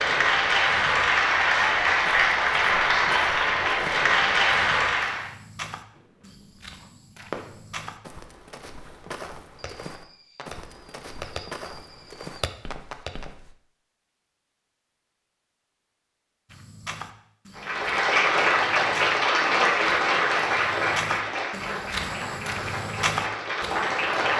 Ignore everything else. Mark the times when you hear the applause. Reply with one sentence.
The applause can be heard from 0.0 to 5.3 s and from 17.6 to 24.3 s.